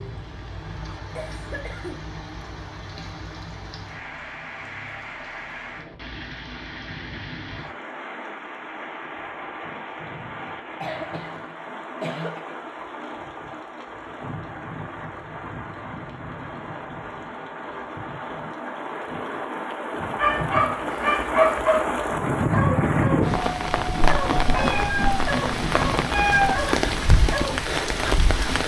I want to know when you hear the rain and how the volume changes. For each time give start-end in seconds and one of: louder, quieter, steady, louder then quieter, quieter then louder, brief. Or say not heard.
0.0-28.6 louder.